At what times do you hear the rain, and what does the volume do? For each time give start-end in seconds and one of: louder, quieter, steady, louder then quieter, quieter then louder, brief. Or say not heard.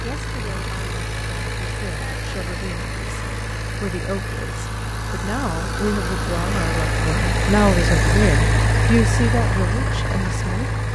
not heard.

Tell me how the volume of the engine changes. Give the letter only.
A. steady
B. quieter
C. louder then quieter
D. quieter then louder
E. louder
E.